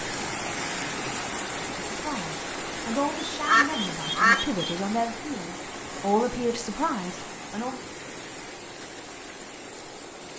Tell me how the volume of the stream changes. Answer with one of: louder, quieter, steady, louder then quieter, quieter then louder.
quieter.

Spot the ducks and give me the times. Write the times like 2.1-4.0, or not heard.
3.2-4.8.